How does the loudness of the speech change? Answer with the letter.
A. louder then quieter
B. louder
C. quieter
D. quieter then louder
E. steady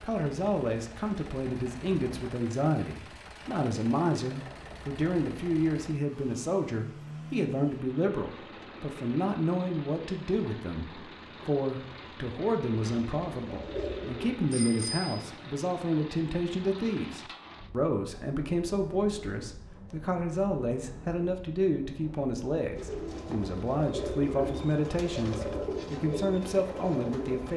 E.